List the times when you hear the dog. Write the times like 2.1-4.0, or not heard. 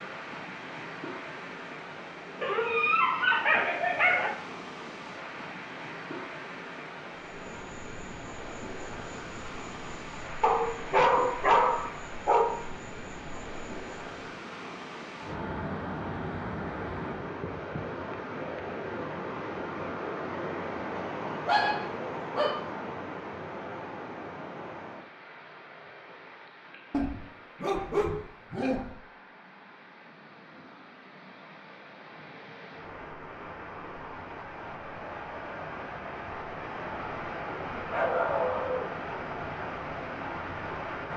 2.4-4.3, 10.4-12.4, 20.9-22.6, 26.9-28.9, 37.9-39.2.